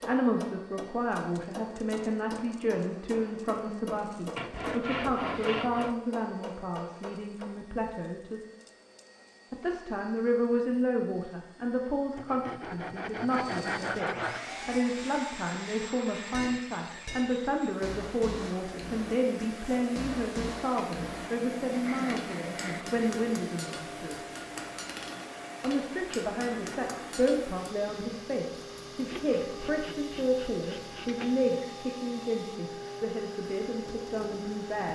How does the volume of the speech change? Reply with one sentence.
The loudness of the speech stays about the same.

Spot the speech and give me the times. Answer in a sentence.
The speech can be heard from 0.0 to 8.4 s, from 9.5 to 24.2 s and from 25.6 to 34.9 s.